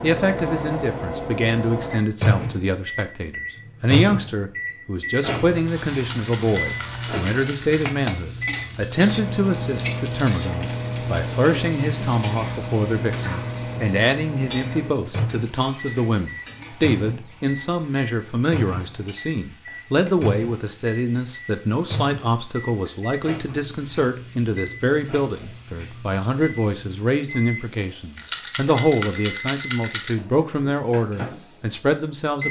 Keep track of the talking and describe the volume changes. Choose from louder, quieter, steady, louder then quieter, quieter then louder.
steady.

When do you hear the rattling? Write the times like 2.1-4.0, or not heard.
6.0-8.0, 28.1-30.1.